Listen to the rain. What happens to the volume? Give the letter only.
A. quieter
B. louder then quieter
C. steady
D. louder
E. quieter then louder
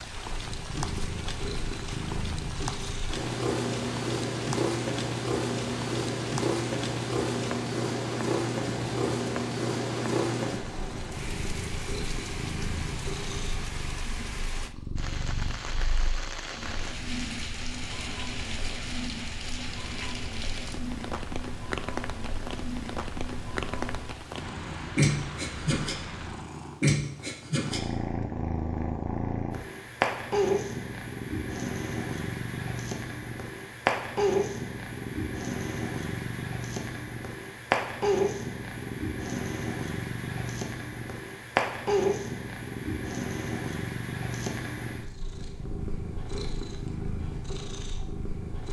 C.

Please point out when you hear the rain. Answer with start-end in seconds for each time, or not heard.
0.0-26.5.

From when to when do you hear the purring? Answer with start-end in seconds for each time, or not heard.
0.0-48.6.